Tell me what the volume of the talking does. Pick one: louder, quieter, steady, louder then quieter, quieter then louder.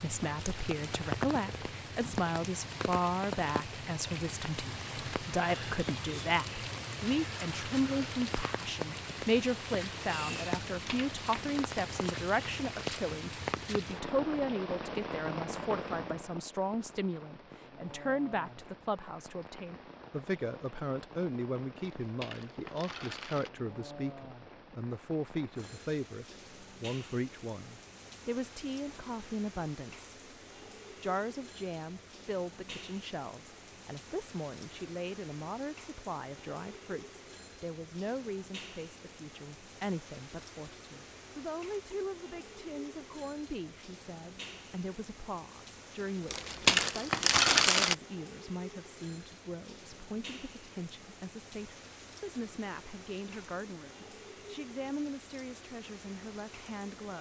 quieter.